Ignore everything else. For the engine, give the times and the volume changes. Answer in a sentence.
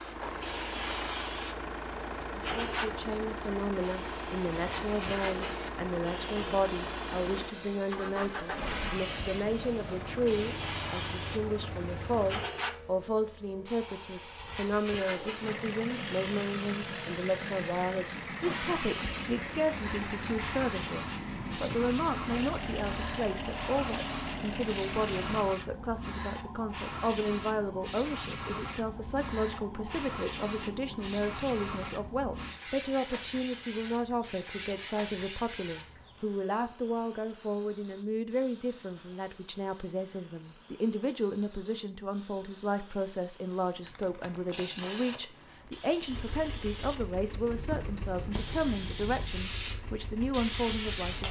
You can hear the engine from 0.0 to 12.5 s, at a steady volume; from 15.3 to 25.5 s, at a steady volume; and from 46.0 to 51.2 s, at a steady volume.